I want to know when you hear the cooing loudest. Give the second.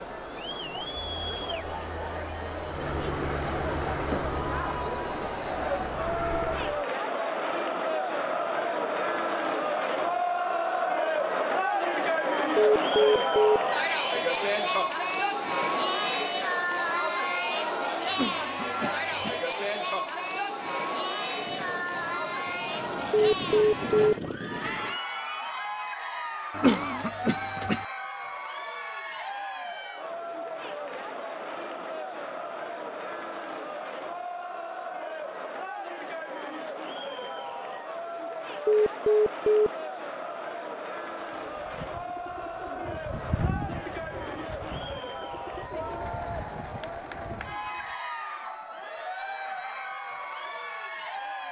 43 s.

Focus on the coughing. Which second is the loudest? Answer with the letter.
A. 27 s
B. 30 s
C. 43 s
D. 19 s
A.